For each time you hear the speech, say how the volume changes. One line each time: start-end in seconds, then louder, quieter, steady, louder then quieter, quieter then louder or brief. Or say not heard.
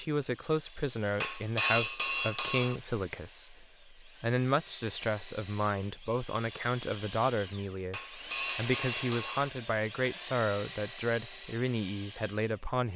0.0-12.9 steady.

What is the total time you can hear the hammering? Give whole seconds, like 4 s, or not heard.
3 s.